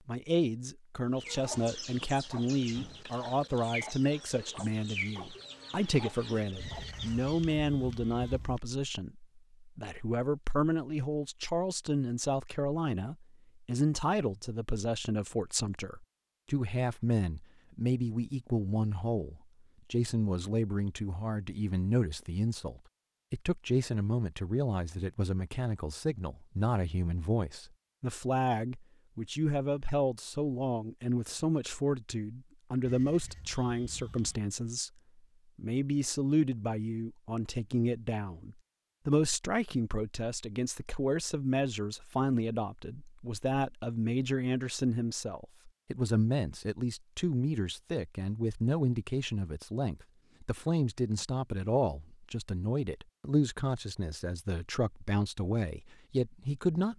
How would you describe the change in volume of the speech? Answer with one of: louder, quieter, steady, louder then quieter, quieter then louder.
steady.